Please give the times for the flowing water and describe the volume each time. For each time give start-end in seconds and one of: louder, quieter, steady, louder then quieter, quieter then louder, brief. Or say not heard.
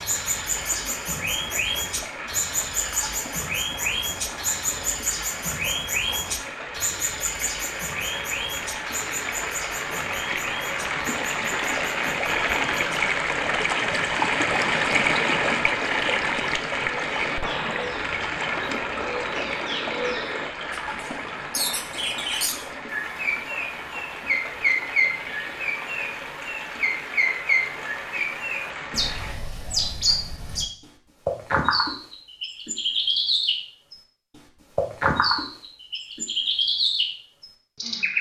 0.0-29.4 louder then quieter.